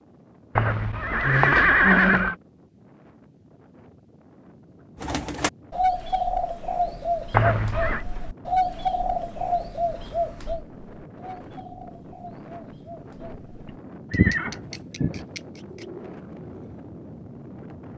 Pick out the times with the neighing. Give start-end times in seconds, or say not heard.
0.6-2.4, 7.3-8.1, 13.7-15.2.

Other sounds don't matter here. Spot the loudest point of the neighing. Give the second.
2 s.